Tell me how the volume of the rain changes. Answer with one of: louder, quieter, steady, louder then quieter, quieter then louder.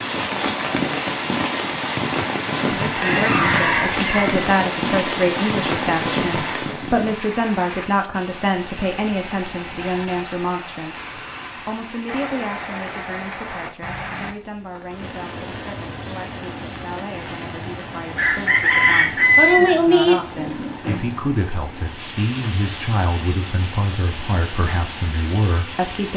quieter.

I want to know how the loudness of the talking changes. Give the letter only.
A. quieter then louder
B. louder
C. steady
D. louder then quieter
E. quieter
A.